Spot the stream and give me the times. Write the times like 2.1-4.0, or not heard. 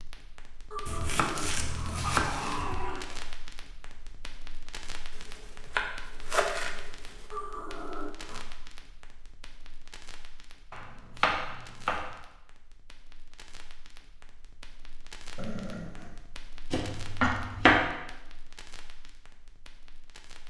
not heard.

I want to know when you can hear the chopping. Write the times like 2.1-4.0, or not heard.
0.8-2.8, 5.7-6.7, 10.7-12.1, 16.7-17.8.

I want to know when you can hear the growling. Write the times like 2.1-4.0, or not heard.
0.7-3.2, 7.3-8.4, 15.3-16.2.